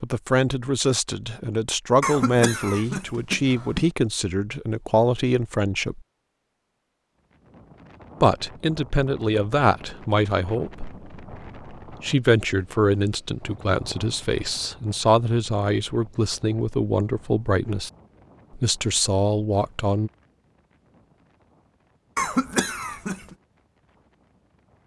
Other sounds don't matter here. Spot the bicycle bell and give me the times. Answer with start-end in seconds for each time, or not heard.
not heard.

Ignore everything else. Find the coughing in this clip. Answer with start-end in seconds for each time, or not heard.
2.0-3.9, 22.1-23.4.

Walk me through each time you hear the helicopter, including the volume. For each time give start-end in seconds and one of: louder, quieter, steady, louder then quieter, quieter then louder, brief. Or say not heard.
not heard.